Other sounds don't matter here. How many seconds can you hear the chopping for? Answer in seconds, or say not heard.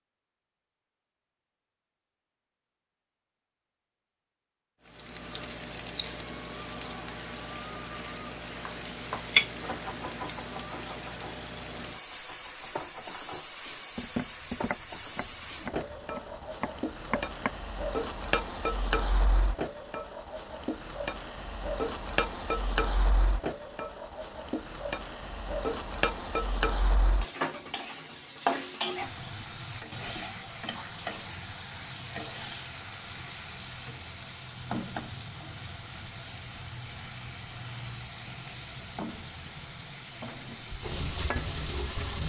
9 s.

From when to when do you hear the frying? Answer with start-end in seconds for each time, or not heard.
4.8-42.2.